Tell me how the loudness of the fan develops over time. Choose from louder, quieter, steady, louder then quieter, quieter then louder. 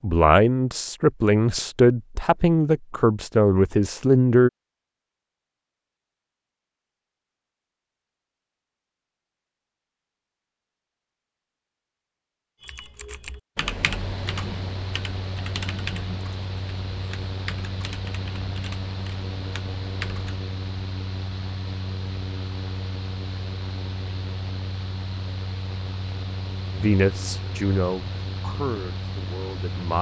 steady.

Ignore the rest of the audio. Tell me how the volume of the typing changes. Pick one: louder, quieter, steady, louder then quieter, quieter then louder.
quieter.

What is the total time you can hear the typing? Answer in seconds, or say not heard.
8 s.